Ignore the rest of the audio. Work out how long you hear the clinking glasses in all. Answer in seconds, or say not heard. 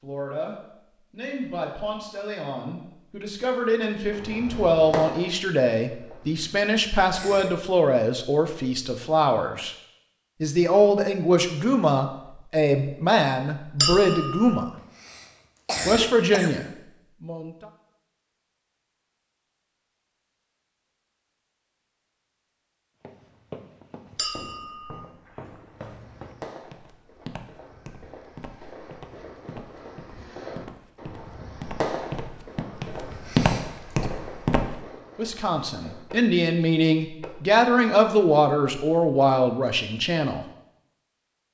2 s.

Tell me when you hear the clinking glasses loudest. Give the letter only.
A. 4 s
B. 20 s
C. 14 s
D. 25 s
C.